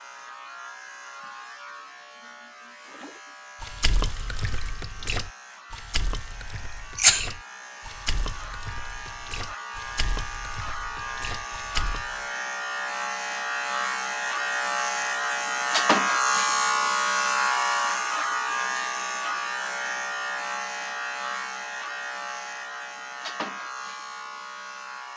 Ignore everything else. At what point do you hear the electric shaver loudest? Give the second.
16 s.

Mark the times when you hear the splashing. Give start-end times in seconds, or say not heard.
2.9-12.2.